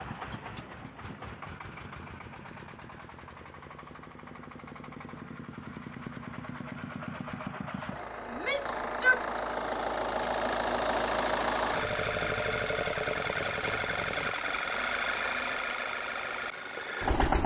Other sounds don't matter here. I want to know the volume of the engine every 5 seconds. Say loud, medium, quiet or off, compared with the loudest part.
quiet, medium, loud, loud.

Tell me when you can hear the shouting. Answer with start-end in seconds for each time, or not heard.
8.3-9.2.